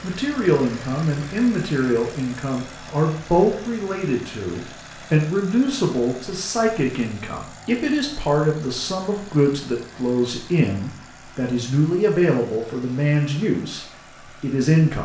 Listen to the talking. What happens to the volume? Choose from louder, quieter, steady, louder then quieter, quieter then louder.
steady.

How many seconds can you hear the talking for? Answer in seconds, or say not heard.
15 s.